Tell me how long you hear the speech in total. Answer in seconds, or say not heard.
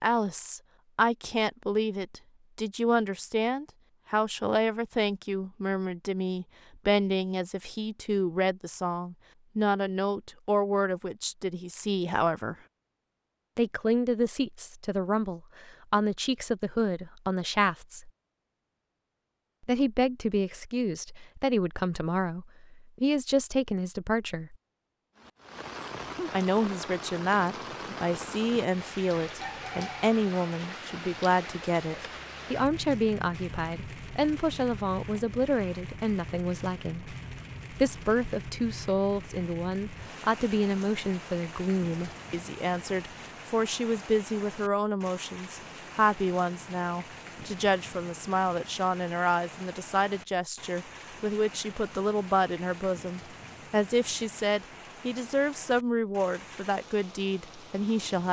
54 s.